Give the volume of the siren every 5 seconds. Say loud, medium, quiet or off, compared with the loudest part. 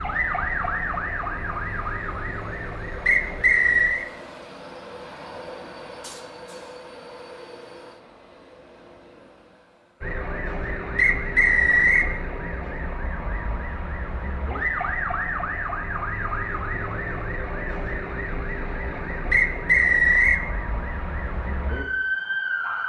loud, off, loud, loud, loud.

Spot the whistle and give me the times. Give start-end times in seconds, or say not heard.
3.0-4.0, 10.9-12.1, 19.3-20.4.